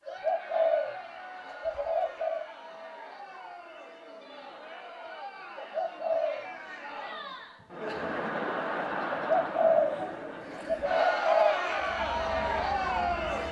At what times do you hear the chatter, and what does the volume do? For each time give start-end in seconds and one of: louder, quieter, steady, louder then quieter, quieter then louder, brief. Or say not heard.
0.0-13.4 louder.